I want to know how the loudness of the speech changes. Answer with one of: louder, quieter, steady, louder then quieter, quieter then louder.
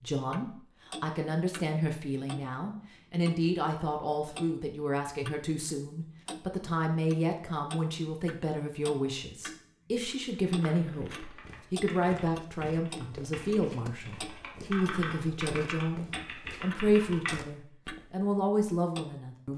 steady.